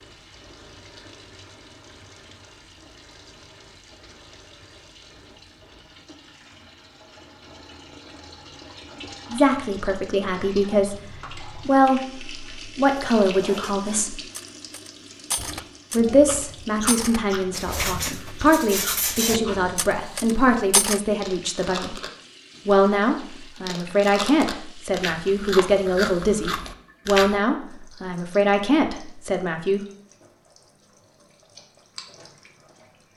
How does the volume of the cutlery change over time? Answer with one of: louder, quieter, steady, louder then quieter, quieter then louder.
louder.